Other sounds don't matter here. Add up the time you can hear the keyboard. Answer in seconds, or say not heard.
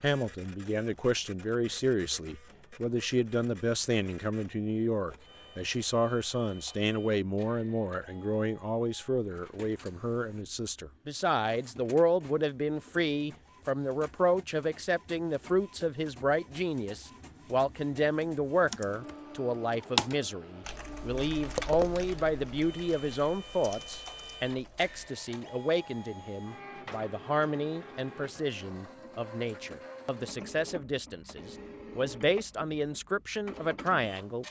6 s.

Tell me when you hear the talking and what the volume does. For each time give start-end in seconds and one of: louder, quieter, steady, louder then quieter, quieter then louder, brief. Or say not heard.
0.0-34.4 steady.